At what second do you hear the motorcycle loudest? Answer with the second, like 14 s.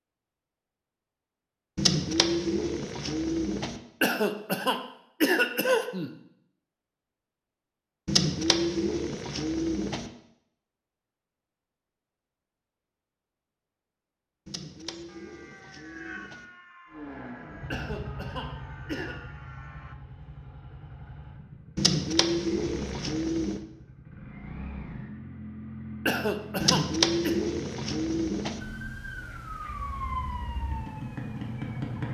32 s.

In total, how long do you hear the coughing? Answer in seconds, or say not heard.
5 s.